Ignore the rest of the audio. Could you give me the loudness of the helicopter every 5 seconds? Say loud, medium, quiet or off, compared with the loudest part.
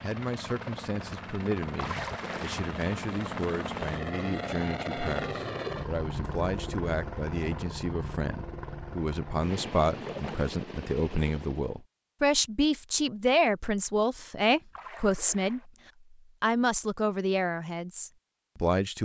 loud, loud, medium, off.